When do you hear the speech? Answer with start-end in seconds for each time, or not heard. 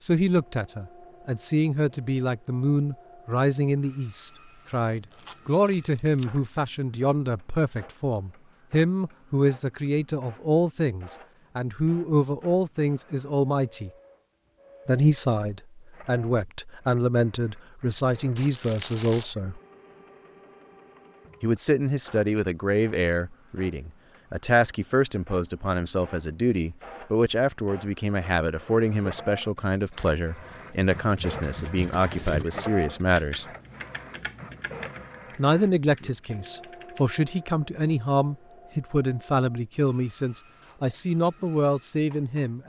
0.0-13.9, 14.8-19.6, 21.4-33.5, 35.4-42.6.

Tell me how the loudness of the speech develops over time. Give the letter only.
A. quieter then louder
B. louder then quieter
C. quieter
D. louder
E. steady
E.